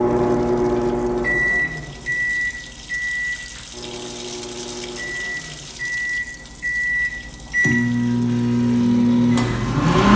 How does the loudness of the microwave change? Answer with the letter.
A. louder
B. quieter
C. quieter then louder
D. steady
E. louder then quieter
C.